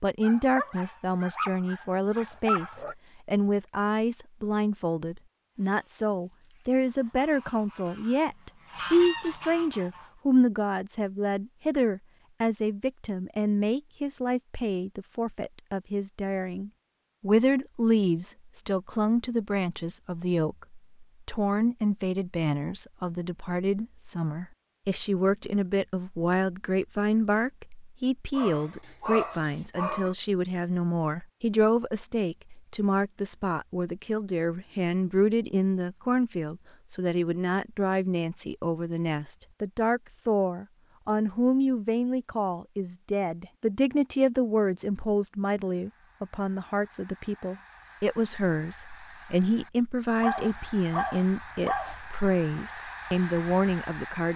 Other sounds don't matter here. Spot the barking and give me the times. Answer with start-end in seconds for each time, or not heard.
0.2-3.0, 28.3-30.1, 50.2-52.0.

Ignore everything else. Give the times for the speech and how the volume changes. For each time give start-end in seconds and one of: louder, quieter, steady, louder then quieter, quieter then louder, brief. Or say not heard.
0.0-54.3 steady.